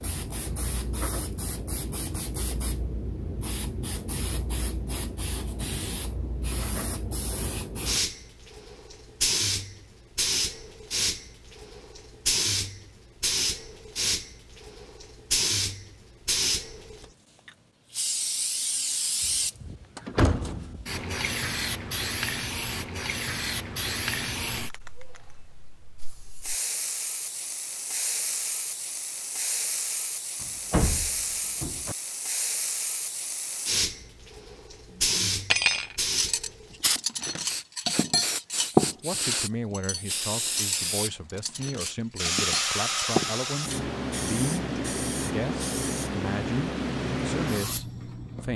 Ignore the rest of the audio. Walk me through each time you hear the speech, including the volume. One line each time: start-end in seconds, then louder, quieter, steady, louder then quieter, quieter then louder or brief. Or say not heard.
39.0-48.5 steady.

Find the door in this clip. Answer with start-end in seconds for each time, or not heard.
19.2-20.9, 30.4-31.9.